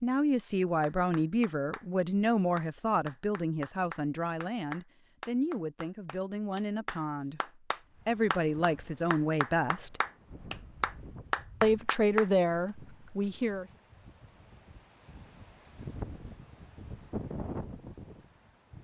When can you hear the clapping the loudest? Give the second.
11 s.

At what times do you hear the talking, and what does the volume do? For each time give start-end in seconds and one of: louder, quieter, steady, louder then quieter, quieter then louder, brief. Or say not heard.
0.0-10.0 quieter then louder
11.6-13.7 brief.